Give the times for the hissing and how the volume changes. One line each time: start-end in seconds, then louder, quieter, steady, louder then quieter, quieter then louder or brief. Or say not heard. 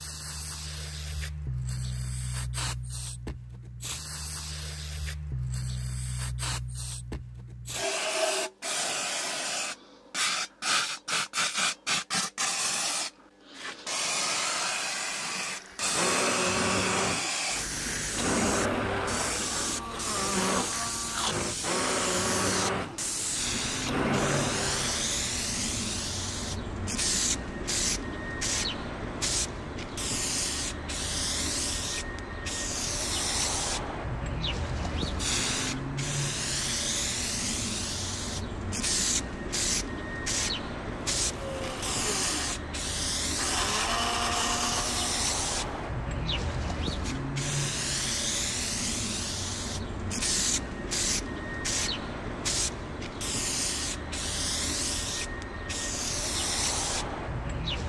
0.0-57.8 steady.